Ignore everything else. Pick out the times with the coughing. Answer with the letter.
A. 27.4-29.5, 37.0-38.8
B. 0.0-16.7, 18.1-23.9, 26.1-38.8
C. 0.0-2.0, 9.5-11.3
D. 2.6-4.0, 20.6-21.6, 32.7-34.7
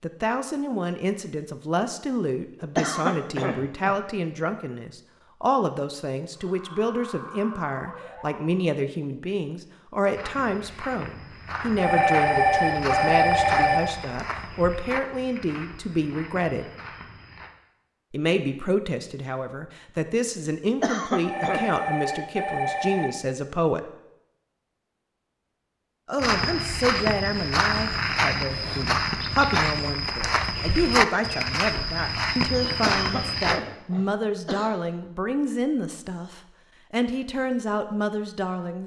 D.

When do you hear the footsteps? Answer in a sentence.
You can hear the footsteps from 10.1 to 17.5 s and from 26.1 to 33.6 s.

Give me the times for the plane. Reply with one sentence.
The plane can't be heard in this clip.